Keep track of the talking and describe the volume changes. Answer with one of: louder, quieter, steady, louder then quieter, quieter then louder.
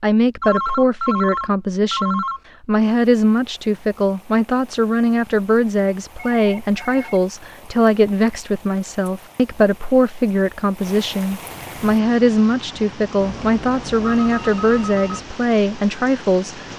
steady.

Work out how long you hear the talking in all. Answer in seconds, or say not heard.
17 s.